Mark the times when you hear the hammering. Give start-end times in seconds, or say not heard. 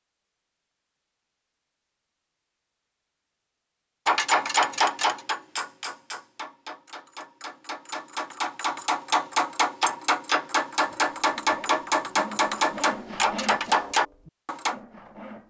4.0-14.8.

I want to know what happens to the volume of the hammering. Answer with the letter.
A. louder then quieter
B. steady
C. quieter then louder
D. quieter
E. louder
C.